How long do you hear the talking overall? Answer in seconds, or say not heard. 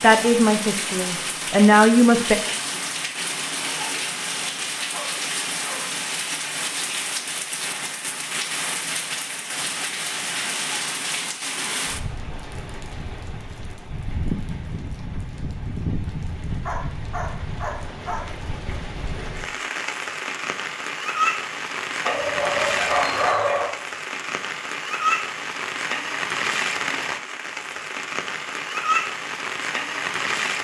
2 s.